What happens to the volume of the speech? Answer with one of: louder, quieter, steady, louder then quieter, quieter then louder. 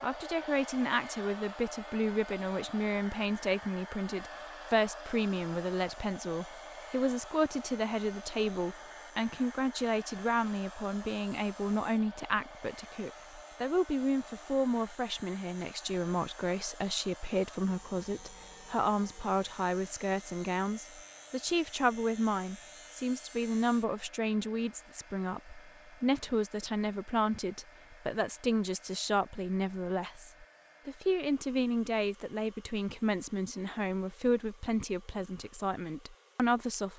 steady.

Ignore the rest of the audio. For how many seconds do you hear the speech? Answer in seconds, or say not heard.
37 s.